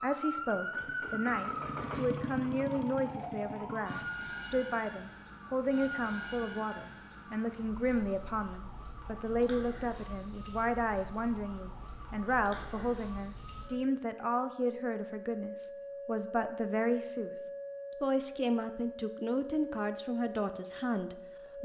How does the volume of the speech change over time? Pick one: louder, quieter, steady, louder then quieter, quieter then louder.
steady.